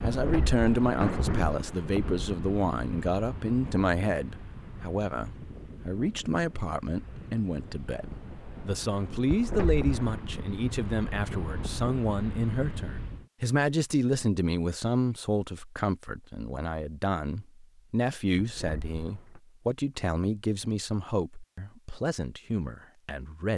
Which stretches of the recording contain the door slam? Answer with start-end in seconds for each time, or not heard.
0.1-1.6, 9.2-10.1, 18.4-19.4.